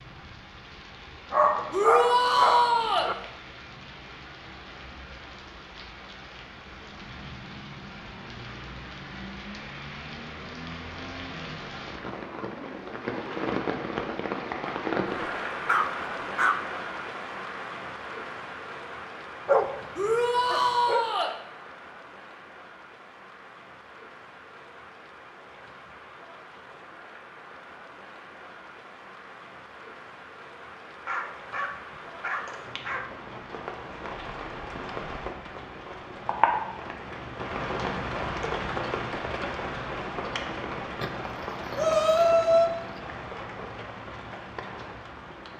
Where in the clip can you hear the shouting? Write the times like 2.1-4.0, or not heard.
1.7-3.1, 19.9-21.4, 41.8-42.7.